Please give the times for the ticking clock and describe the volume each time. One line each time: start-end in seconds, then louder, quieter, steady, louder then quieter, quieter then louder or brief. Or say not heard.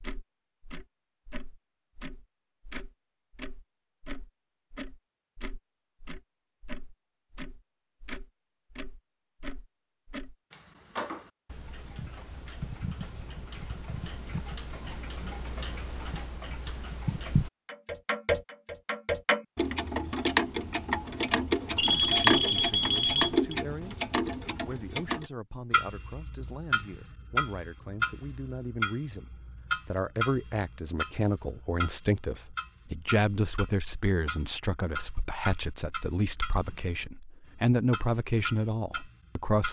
0.0-39.6 louder then quieter.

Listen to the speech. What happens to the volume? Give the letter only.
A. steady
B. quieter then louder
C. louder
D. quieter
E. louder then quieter
C.